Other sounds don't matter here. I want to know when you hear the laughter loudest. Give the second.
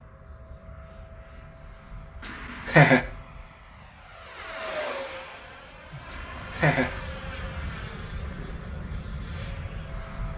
3 s.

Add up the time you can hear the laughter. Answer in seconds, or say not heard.
2 s.